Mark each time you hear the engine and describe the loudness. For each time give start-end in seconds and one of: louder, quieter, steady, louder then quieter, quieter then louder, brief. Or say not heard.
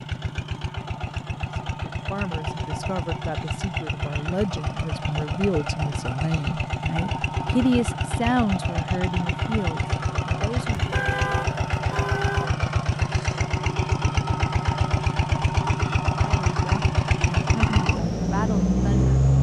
0.0-19.3 louder.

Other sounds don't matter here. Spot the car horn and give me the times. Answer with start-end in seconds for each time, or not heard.
10.8-12.6.